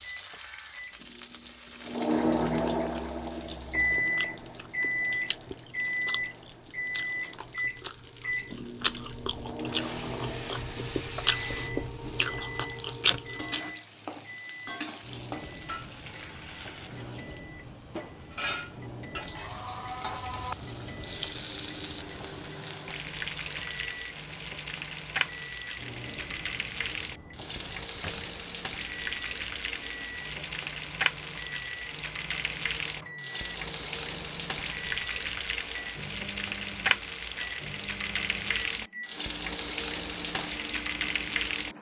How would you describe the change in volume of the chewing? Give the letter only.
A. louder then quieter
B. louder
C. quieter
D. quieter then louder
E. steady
B.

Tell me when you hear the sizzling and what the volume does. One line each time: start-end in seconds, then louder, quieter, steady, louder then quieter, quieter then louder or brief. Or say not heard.
0.0-41.7 louder.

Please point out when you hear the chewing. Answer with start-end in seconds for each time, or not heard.
2.9-13.6.